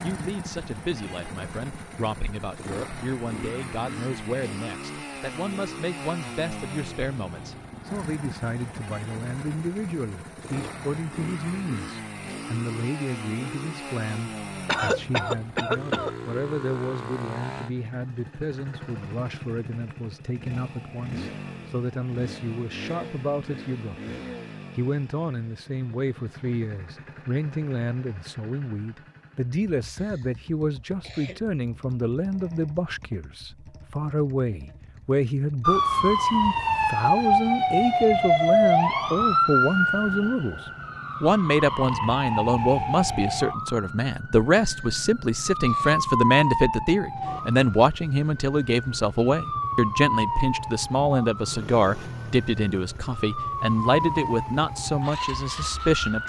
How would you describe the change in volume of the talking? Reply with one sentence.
The volume of the talking goes up.